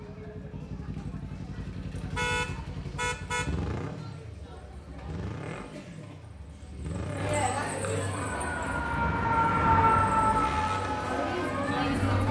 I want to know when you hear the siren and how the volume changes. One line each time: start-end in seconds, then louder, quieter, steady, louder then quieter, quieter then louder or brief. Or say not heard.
8.1-12.2 louder then quieter.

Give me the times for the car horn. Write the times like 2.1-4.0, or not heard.
2.1-3.5.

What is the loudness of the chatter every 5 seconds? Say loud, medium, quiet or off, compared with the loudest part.
quiet, medium, loud.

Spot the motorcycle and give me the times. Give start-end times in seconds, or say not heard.
0.0-12.2.